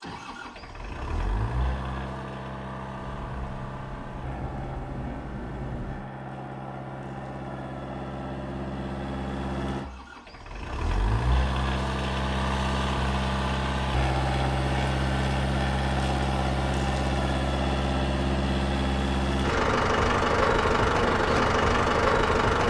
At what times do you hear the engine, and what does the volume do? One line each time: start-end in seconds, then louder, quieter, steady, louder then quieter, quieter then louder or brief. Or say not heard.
0.0-22.6 louder.